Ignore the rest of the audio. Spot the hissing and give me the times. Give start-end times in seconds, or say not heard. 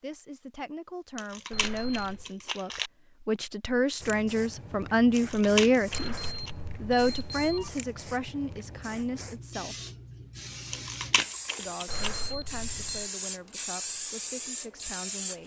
4.0-15.4.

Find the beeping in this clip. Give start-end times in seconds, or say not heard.
1.5-2.2, 5.9-7.7, 11.8-13.1.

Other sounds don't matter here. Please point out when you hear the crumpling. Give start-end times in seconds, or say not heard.
1.1-2.9, 5.2-6.5, 10.7-12.1.